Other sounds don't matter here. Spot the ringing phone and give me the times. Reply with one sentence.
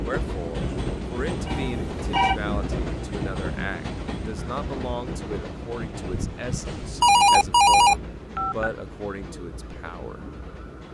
You can hear the ringing phone from 1.4 to 2.4 s and from 6.1 to 8.7 s.